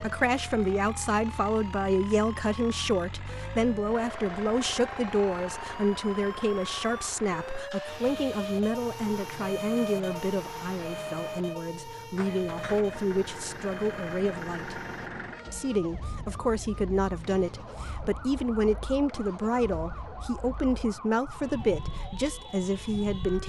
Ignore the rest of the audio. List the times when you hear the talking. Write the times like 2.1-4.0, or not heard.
0.0-14.8, 15.5-23.4.